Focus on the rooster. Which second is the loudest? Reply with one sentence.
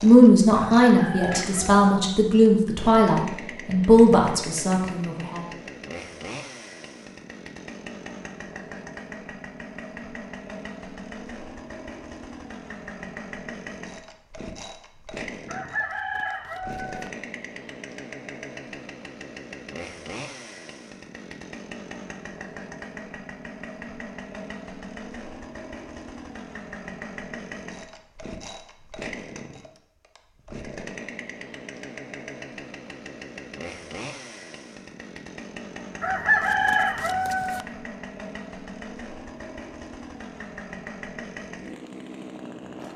The volume of the rooster peaks at 36 seconds.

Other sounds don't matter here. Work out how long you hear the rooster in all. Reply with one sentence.
You can hear the rooster for 5 seconds altogether.